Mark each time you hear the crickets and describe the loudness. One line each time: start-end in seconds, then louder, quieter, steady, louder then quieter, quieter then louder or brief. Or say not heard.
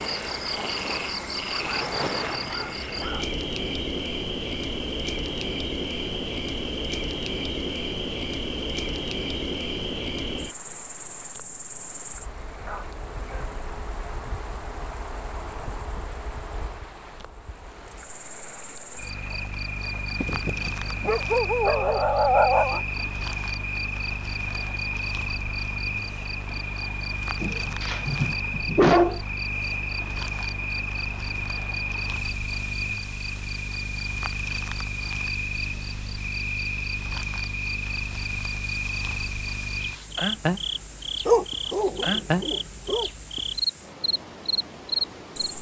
0.0-45.5 quieter then louder.